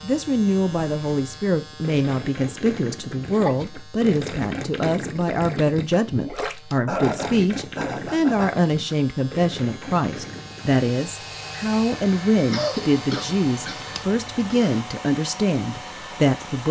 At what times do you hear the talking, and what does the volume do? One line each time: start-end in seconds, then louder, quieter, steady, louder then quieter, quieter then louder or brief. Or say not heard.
0.0-16.6 steady.